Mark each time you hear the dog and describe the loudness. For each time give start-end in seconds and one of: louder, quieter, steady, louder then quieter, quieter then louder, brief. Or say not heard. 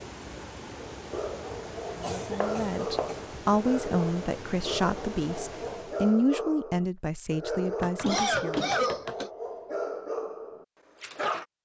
0.9-11.4 steady.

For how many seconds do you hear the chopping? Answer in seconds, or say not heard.
2 s.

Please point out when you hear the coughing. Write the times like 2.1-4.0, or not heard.
2.0-3.2, 8.0-9.3.